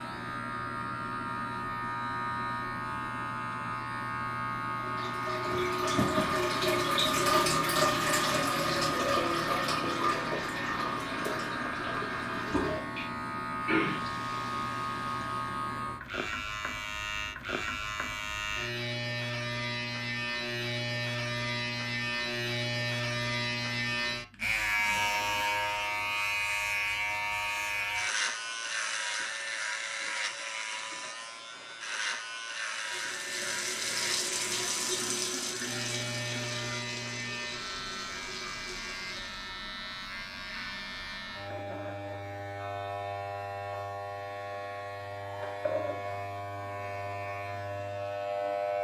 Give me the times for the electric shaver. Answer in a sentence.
The electric shaver can be heard from 0.0 to 48.7 s.